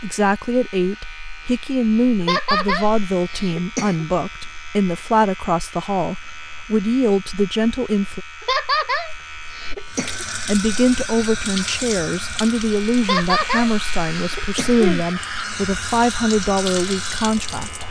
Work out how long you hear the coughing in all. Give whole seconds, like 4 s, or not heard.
6 s.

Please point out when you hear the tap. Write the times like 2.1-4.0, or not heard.
9.8-17.8.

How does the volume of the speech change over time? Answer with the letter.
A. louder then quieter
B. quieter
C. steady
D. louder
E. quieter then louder
C.